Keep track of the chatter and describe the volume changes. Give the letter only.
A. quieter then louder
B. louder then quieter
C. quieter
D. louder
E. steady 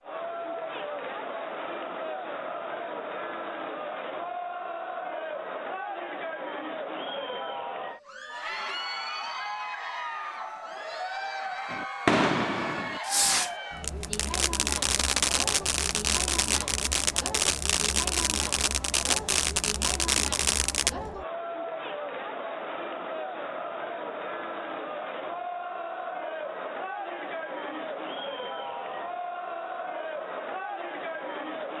E.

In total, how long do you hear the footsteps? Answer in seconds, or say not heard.
not heard.